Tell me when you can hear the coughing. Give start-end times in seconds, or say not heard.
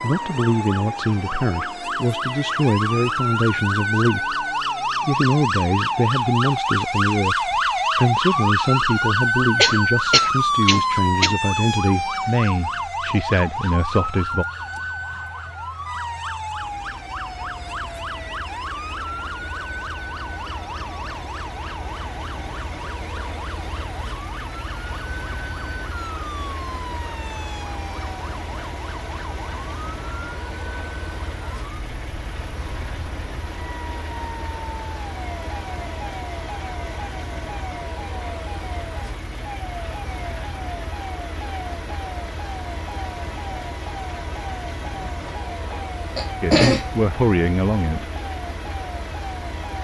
9.6-11.3, 45.0-46.9.